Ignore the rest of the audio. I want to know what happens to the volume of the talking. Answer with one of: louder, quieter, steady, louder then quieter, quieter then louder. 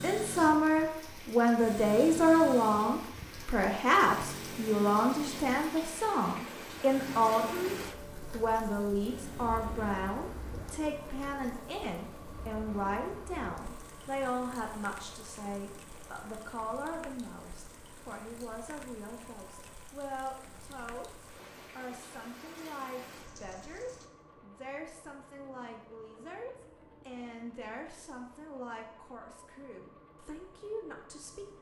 quieter.